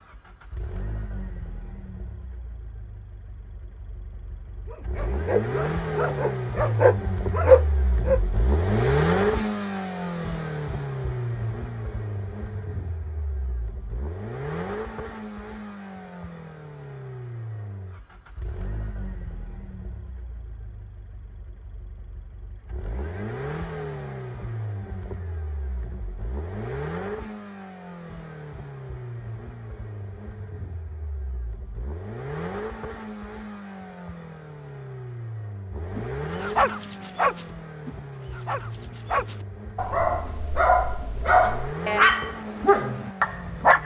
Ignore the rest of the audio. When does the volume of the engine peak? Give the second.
9 s.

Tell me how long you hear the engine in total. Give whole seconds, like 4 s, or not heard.
44 s.